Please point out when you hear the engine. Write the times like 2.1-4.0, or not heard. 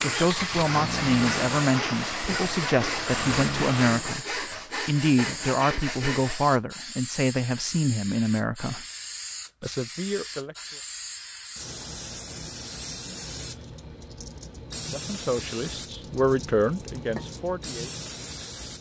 0.0-4.1.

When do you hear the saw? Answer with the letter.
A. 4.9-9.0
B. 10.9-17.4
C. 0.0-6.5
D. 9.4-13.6
C.